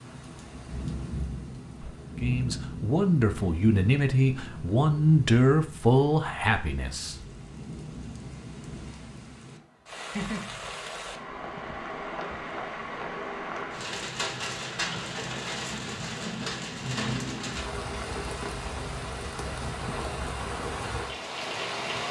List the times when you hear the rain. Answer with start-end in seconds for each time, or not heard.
0.0-22.0.